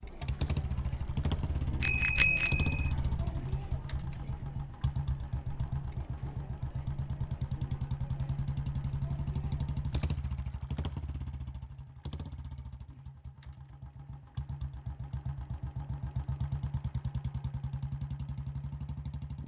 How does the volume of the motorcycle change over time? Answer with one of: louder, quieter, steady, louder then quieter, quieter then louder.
quieter then louder.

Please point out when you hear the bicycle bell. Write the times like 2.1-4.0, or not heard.
1.8-2.9.